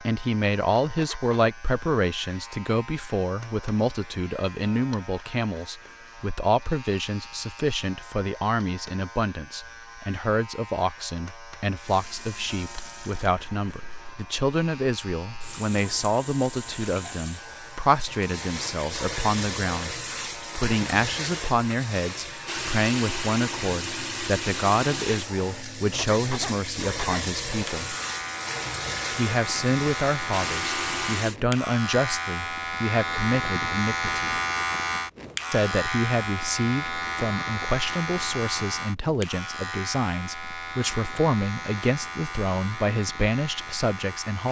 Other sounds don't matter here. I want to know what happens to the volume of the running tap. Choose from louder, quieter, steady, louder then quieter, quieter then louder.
louder.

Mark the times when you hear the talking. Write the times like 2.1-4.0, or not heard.
0.0-27.9, 29.1-34.4, 35.5-44.4.